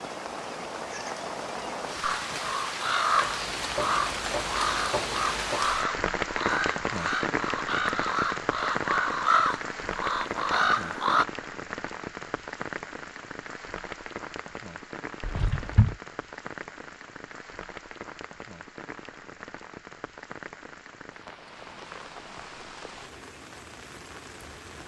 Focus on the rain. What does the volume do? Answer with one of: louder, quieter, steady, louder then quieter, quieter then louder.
quieter.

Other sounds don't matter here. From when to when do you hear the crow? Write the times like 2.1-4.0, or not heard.
2.0-11.2.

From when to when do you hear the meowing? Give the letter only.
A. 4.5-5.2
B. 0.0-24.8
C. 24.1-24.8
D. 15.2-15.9
D.